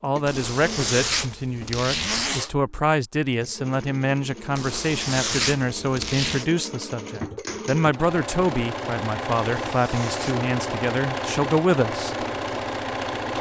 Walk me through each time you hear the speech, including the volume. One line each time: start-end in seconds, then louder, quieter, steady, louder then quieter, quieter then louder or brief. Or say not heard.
0.0-12.2 steady.